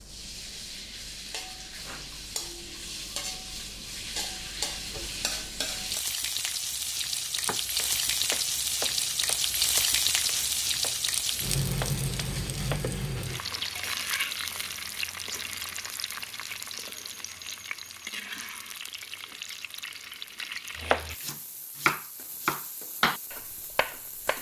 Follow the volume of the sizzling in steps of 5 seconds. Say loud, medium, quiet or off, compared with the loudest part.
medium, loud, loud, medium, quiet.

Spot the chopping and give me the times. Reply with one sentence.
The chopping can be heard from 7.5 to 13.0 s and from 20.8 to 24.3 s.